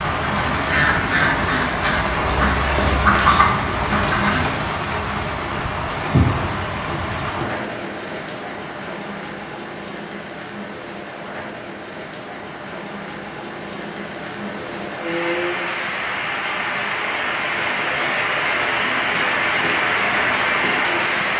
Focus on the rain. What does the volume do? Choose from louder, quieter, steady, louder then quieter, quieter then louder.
quieter then louder.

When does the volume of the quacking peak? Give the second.
3 s.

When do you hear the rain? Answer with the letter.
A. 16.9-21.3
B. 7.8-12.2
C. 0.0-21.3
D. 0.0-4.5
C.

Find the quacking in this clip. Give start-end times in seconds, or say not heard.
0.0-4.5.